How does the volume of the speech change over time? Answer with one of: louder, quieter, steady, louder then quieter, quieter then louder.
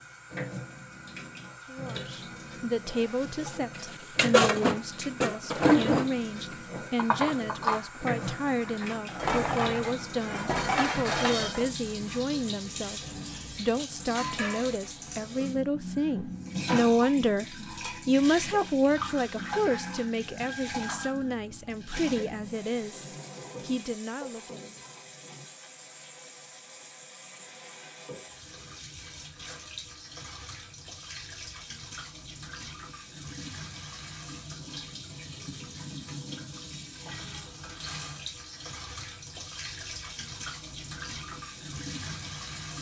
louder then quieter.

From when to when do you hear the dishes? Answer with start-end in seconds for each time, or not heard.
3.5-11.7.